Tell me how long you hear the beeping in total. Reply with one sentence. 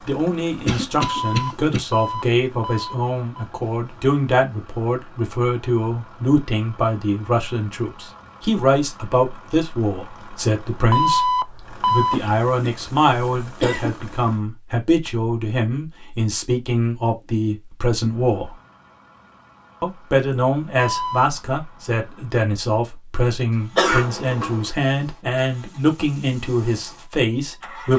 You can hear the beeping for 4 seconds altogether.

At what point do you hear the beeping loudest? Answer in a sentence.
The volume of the beeping peaks at 11 seconds.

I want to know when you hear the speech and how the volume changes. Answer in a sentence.
The speech can be heard from 0.1 to 18.6 s, at a steady volume; and from 19.8 to 27.9 s, at a steady volume.